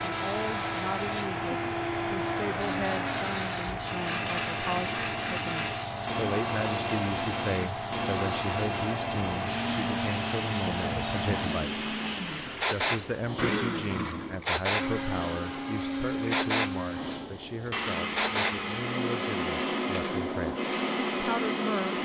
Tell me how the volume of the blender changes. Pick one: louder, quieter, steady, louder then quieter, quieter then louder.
steady.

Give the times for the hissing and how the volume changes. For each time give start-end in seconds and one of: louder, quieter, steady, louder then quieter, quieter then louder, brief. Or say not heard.
0.0-22.0 steady.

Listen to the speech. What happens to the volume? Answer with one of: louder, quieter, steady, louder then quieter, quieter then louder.
steady.